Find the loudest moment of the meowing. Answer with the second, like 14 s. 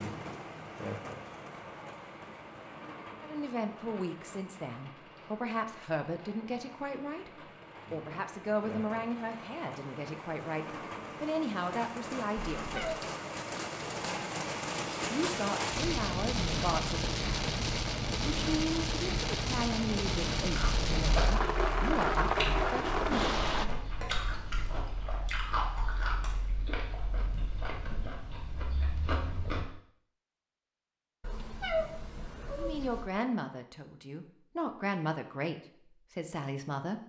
32 s.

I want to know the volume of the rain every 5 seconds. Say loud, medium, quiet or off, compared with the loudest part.
quiet, quiet, medium, loud, loud, off, off, off.